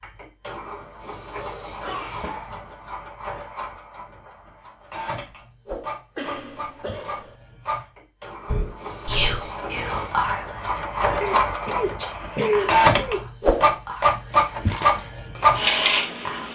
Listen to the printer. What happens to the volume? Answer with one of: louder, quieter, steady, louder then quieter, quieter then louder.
louder.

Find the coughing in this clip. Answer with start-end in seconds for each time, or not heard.
1.8-3.0, 6.2-7.3, 11.2-13.2.